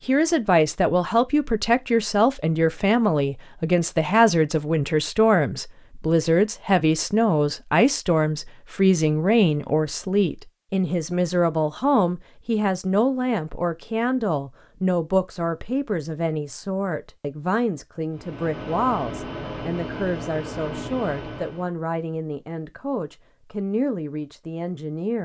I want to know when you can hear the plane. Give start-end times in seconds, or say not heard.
18.1-21.7.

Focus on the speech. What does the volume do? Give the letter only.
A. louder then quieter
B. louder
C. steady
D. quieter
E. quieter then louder
D.